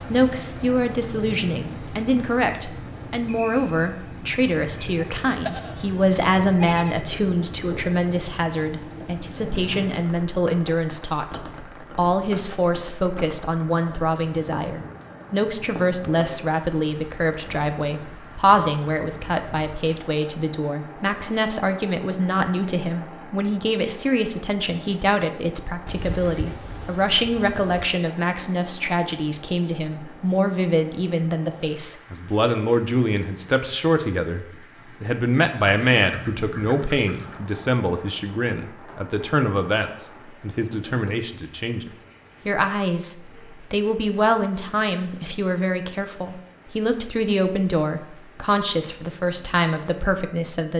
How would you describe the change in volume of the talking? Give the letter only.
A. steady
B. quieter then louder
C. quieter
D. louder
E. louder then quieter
A.